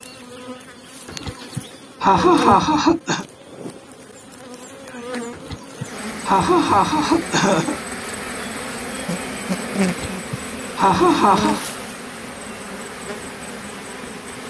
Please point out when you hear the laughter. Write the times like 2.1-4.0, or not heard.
1.1-3.2, 5.3-7.8, 9.8-11.7.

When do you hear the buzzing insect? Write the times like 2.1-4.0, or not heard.
0.0-14.4.